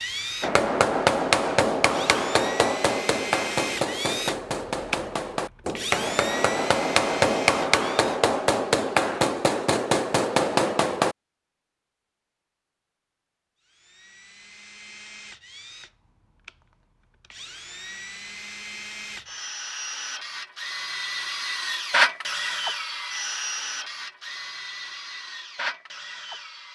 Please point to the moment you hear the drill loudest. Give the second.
22 s.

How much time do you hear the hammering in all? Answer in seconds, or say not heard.
11 s.